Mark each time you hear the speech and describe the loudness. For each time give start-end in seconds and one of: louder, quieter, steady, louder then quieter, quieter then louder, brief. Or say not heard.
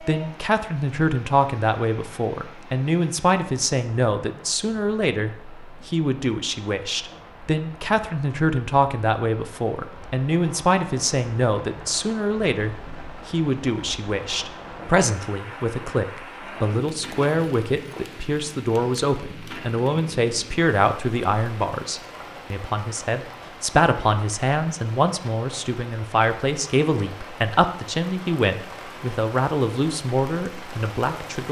0.0-31.4 steady.